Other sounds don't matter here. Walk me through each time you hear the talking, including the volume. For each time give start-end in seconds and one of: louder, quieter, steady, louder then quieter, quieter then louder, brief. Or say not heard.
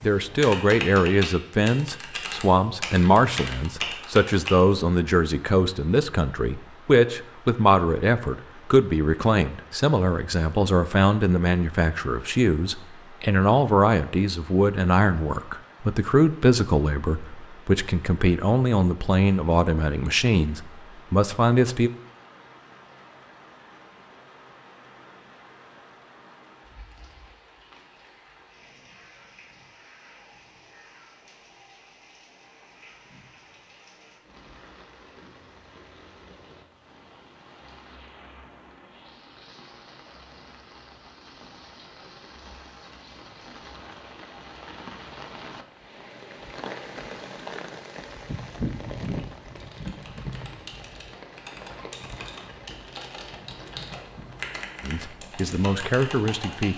0.0-21.9 steady
54.8-56.7 brief.